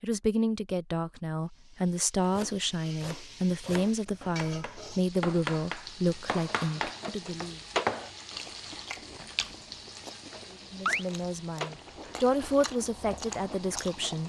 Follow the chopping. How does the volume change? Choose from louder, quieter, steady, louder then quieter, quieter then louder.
louder.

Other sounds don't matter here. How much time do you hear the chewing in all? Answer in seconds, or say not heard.
6 s.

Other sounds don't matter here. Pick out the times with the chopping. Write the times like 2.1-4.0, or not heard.
2.2-8.1.